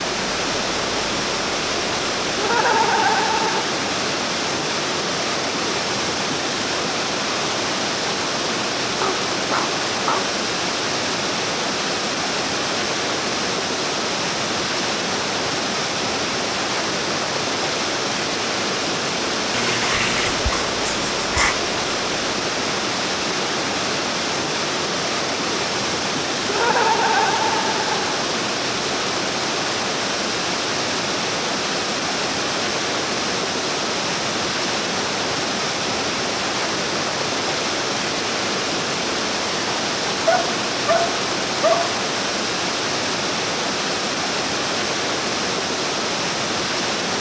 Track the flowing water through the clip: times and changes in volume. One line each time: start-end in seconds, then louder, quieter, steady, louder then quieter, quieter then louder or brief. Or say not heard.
0.0-47.1 steady.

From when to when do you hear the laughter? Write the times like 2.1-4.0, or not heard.
2.4-3.6, 26.4-28.2.